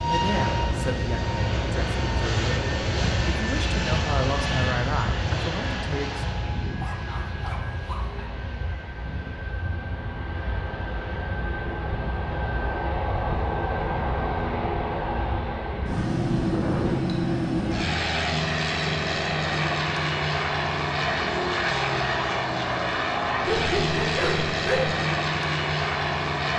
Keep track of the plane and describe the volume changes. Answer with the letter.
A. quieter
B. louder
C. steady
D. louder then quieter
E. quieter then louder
E.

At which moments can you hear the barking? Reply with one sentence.
You can hear the barking from 6.8 to 8.2 s and from 23.4 to 25.0 s.